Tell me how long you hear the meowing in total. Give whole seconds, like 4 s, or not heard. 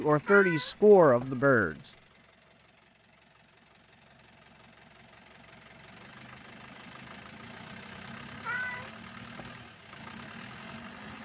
2 s.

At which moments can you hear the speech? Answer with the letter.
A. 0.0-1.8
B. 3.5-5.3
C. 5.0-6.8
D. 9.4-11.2
A.